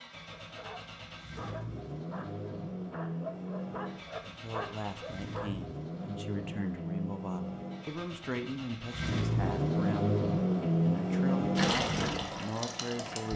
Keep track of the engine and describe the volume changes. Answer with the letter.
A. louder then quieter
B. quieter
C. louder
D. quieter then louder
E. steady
C.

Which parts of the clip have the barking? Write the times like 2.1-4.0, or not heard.
0.3-5.5.